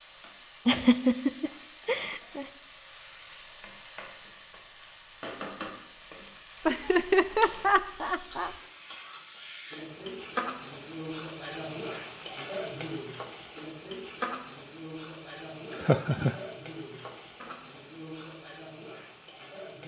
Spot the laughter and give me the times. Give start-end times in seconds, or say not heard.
0.7-2.5, 6.7-8.6, 15.7-16.4.